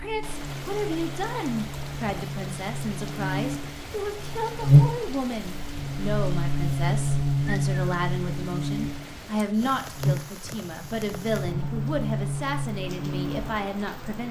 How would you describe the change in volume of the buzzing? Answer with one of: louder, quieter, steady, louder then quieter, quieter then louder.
louder then quieter.